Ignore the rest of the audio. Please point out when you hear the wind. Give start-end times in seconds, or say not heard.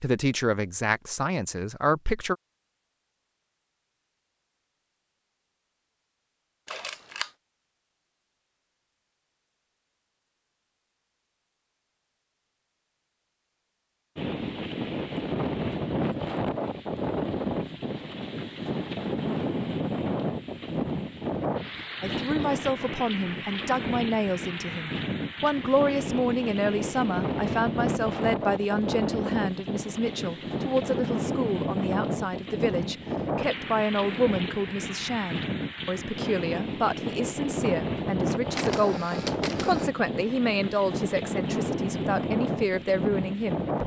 14.2-43.8.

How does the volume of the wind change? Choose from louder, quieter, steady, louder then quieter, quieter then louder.
steady.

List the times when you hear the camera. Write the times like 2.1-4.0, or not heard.
6.7-7.3, 38.5-39.9.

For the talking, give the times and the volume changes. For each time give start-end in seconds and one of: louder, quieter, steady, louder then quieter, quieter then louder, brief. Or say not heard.
0.0-2.4 brief
22.0-43.6 steady.